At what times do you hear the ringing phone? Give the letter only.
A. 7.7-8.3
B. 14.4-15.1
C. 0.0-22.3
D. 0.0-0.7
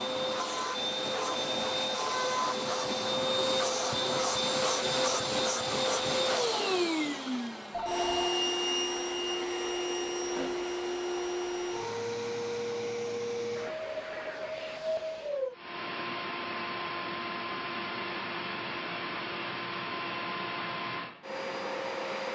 A.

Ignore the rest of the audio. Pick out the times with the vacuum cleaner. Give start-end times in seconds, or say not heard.
0.0-22.3.